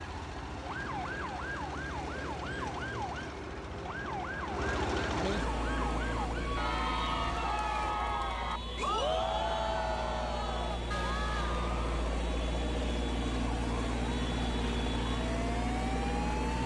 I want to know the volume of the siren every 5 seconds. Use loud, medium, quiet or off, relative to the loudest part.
loud, loud, medium, loud.